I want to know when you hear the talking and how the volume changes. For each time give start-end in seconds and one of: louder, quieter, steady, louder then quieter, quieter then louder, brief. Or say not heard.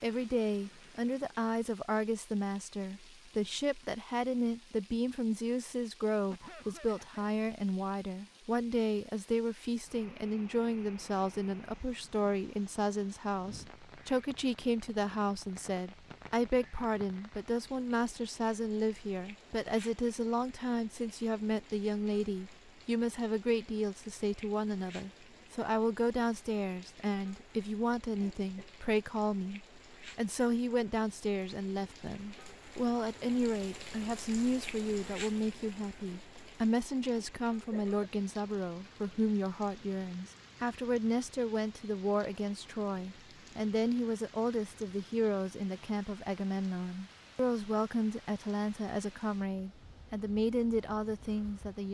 0.0-51.8 steady.